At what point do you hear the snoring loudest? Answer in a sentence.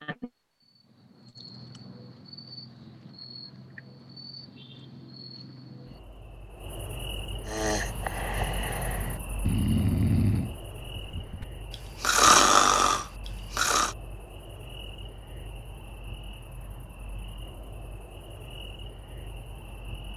The loudest moment of the snoring is at 12 seconds.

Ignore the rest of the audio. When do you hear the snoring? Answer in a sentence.
You can hear the snoring from 7.5 to 13.9 s.